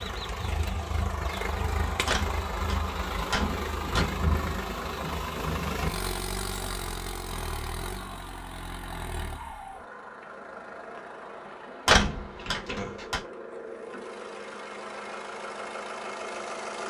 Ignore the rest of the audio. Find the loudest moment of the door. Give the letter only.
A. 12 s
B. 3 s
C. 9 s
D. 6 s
A.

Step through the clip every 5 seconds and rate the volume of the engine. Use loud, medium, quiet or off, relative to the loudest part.
loud, loud, medium, loud.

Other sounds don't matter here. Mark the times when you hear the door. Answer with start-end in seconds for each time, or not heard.
2.0-4.0, 11.8-13.2.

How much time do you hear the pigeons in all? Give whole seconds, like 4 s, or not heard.
2 s.